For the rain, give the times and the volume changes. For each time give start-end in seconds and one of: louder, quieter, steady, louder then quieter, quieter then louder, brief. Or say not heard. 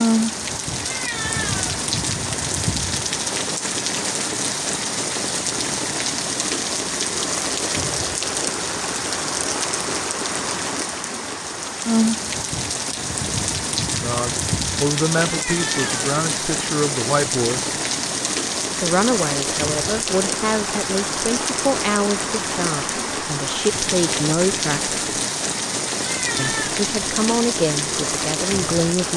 0.0-29.1 steady.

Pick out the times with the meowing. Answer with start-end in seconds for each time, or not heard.
0.8-1.7, 15.2-16.1, 26.0-26.8.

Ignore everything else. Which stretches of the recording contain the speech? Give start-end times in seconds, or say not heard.
14.0-17.8, 18.8-24.9, 26.4-29.1.